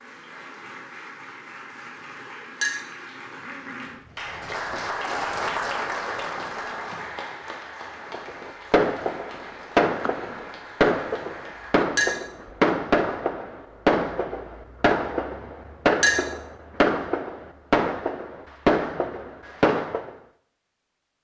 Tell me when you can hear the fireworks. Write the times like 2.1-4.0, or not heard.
8.1-20.1.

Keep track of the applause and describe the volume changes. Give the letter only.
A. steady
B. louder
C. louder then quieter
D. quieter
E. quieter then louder
C.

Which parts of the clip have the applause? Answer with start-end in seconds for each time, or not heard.
0.0-11.8.